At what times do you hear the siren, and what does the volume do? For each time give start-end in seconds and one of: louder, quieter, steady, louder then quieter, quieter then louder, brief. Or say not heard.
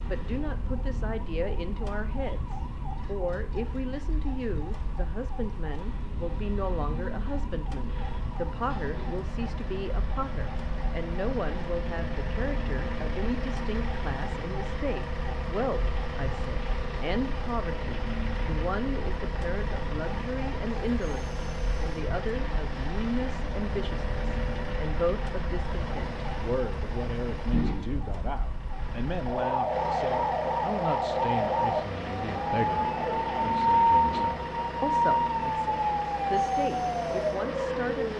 0.0-38.1 louder.